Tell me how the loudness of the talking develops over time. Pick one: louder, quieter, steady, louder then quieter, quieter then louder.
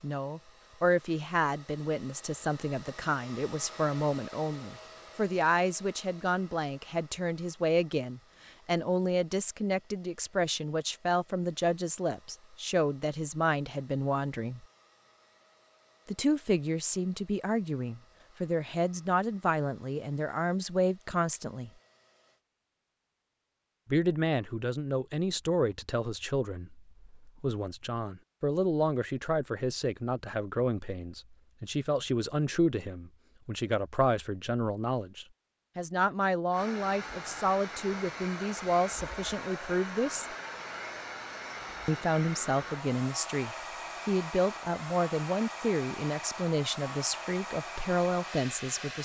steady.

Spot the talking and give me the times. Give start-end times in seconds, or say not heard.
0.0-14.7, 16.1-21.7, 23.9-40.4, 41.9-48.9.